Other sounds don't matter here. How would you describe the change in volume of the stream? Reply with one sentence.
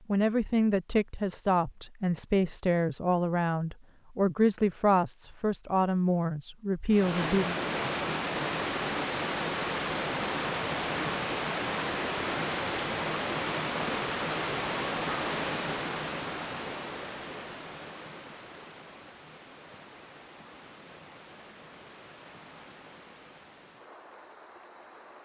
The loudness of the stream goes down.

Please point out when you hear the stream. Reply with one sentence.
The stream can be heard from 6.9 to 25.2 s.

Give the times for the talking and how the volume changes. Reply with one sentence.
The talking can be heard from 0.1 to 7.5 s, at a steady volume.